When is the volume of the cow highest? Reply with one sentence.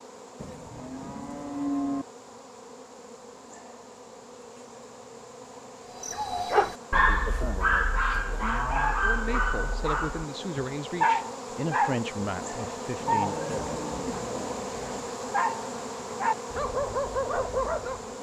The volume of the cow peaks at 2 seconds.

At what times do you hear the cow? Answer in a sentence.
You can hear the cow from 0.3 to 2.0 s, from 6.9 to 8.9 s and from 13.0 to 15.0 s.